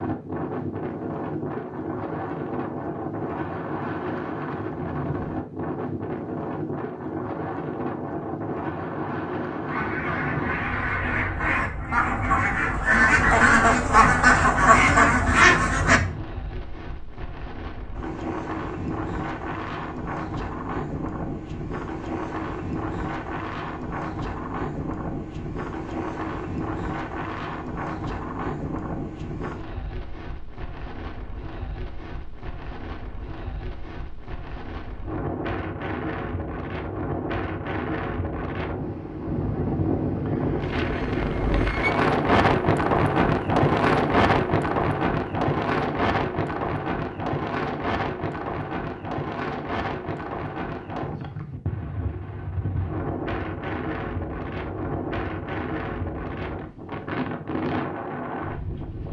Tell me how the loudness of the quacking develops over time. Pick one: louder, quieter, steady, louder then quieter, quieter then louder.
louder.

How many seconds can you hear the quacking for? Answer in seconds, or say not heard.
6 s.